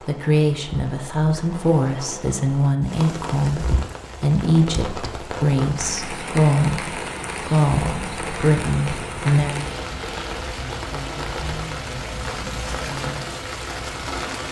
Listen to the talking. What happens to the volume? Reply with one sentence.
The volume of the talking goes down.